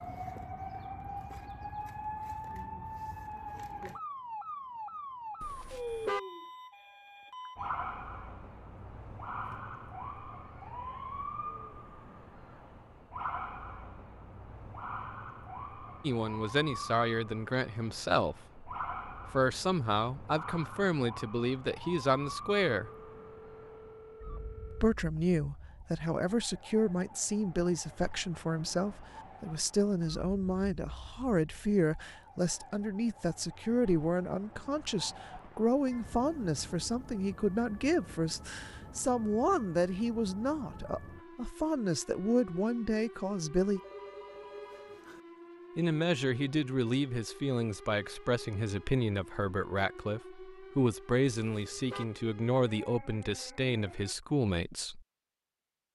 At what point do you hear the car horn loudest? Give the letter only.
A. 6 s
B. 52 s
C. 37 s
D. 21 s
A.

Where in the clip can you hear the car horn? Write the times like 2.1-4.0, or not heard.
5.4-6.2, 51.4-52.0.